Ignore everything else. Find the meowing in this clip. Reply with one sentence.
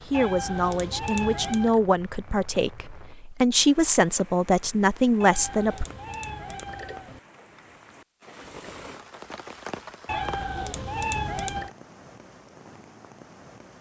You can hear the meowing from 0.1 to 1.8 s, from 5.2 to 7.2 s and from 10.1 to 11.7 s.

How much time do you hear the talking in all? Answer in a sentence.
The talking can be heard for 6 seconds in total.